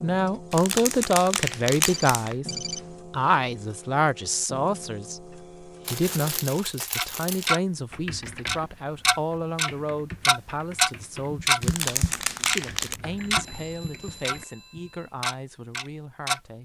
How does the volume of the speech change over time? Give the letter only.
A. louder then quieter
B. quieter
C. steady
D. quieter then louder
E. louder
B.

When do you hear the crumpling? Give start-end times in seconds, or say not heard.
0.5-2.4, 5.8-7.5, 11.6-13.0.